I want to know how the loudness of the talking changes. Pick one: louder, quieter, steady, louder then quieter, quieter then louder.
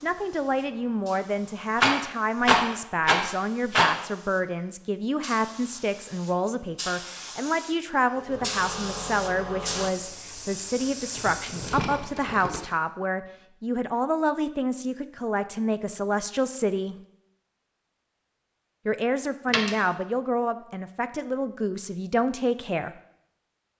steady.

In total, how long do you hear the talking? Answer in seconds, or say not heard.
21 s.